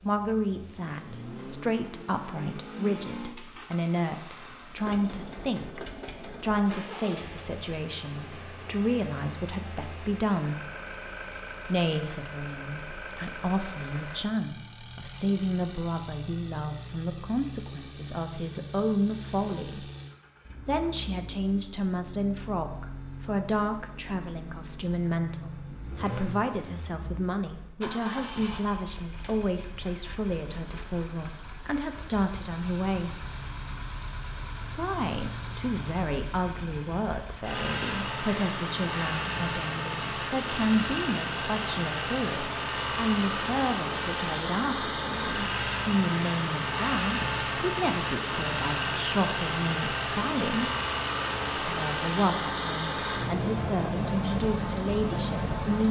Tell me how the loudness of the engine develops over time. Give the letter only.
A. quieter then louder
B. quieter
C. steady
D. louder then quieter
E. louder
E.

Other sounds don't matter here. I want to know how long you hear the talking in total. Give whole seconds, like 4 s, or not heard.
52 s.